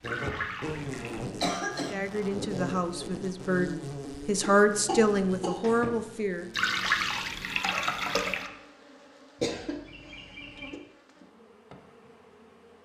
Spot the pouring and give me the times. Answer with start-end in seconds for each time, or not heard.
0.0-1.2, 6.5-8.5.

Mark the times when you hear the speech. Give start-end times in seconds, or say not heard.
1.8-6.5.